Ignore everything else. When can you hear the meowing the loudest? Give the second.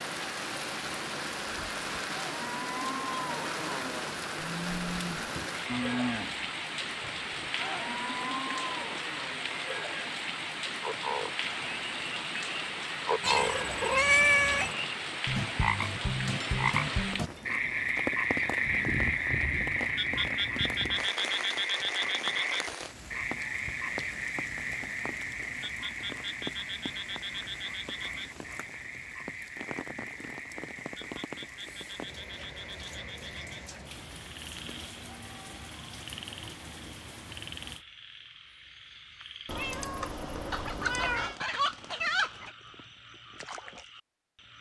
14 s.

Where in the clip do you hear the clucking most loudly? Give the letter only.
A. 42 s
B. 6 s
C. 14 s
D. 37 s
A.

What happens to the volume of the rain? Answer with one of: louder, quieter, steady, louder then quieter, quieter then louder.
quieter.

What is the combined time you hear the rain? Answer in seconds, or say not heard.
38 s.